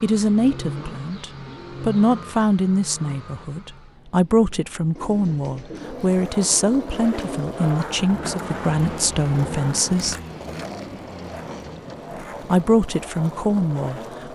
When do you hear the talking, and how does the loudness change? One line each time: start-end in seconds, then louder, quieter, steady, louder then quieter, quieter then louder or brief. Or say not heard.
0.0-10.2 steady
12.4-14.2 brief.